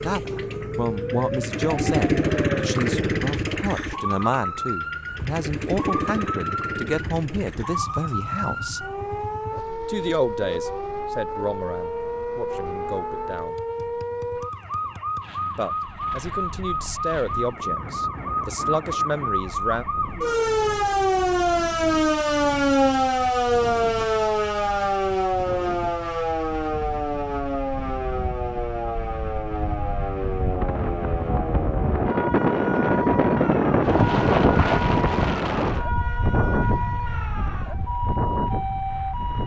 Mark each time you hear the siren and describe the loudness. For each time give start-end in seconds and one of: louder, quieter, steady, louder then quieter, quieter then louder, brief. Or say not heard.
0.0-39.4 louder then quieter.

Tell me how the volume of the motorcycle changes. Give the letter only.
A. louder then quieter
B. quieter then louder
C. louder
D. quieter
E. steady
D.